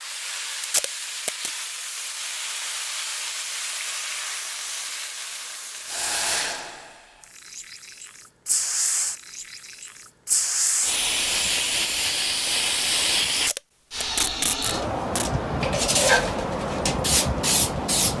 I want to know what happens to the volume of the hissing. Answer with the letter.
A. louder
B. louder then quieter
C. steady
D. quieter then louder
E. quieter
A.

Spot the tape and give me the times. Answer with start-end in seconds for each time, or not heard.
0.6-1.5, 13.3-15.3.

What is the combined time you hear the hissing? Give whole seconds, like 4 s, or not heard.
18 s.